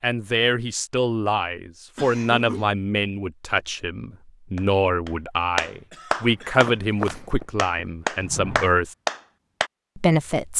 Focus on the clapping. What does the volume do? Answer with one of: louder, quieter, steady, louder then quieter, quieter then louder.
quieter then louder.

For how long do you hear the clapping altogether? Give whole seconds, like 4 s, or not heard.
5 s.